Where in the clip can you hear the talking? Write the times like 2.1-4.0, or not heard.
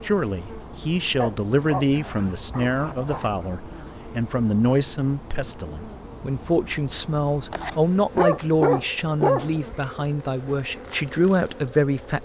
0.0-12.1.